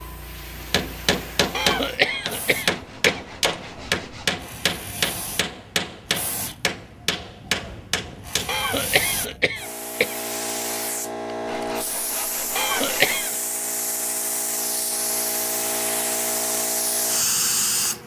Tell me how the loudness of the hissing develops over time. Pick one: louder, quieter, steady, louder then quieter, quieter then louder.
louder.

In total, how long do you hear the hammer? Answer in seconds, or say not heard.
8 s.